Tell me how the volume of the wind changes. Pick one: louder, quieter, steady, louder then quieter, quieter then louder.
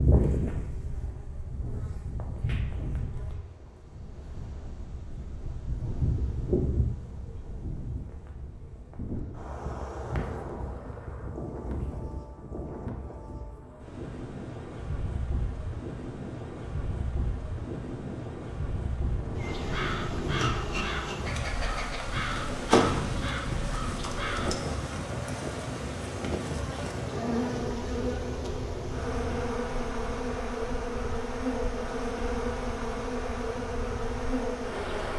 louder then quieter.